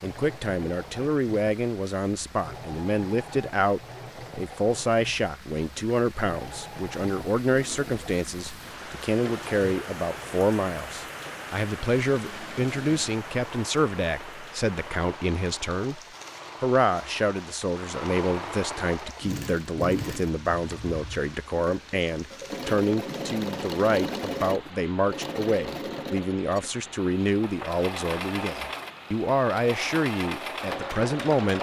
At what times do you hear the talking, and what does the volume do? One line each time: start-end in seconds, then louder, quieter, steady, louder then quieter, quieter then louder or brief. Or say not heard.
0.0-16.0 steady
16.6-31.5 steady.